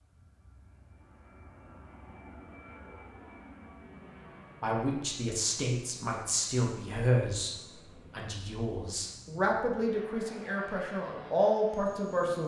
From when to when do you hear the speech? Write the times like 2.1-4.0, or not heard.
4.6-12.4.